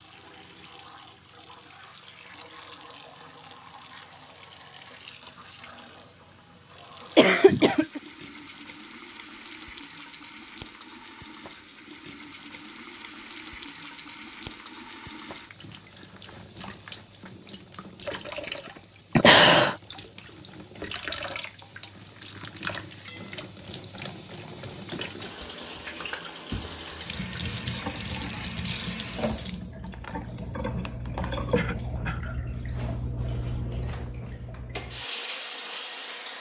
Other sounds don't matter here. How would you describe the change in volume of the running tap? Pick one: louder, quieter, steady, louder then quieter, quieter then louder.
louder.